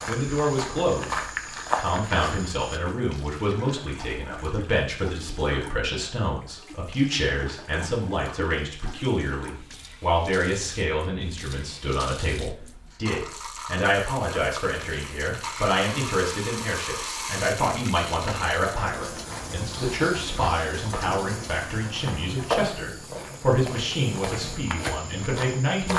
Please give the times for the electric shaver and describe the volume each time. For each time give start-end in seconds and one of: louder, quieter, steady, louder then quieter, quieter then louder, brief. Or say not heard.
not heard.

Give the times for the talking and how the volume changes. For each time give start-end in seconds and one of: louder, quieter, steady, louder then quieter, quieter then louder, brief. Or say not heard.
0.1-25.9 steady.